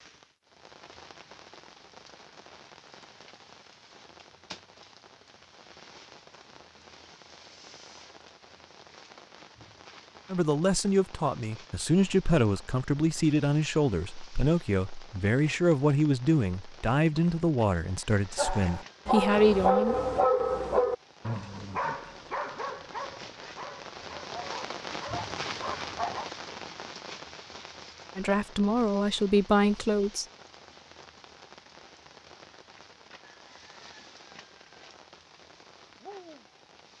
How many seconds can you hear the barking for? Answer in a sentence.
You can hear the barking for 8 seconds altogether.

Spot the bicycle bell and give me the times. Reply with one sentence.
You can't hear the bicycle bell here.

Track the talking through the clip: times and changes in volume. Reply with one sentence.
The talking can be heard from 10.3 to 19.9 s, at a steady volume; and briefly from 28.1 to 30.2 s.